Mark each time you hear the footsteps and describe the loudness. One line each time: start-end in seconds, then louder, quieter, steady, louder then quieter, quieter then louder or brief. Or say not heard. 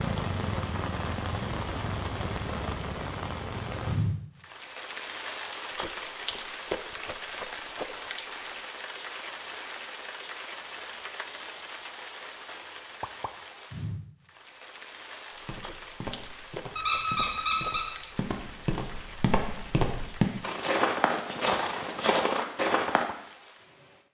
15.3-23.1 louder.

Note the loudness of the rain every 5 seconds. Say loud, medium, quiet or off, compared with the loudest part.
loud, loud, medium, medium, quiet.